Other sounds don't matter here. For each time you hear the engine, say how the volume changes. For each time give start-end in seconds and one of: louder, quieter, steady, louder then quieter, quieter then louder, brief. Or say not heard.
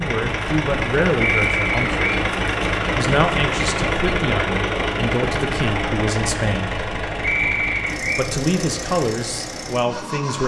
0.0-10.4 quieter.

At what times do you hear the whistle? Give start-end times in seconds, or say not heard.
1.2-2.2, 7.2-8.2.